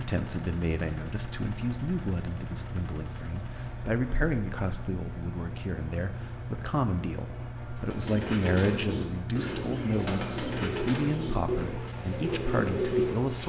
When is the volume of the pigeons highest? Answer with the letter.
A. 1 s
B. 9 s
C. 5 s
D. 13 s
D.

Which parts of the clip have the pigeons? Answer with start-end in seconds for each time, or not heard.
7.8-13.4.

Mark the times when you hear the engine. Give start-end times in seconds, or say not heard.
0.0-13.4.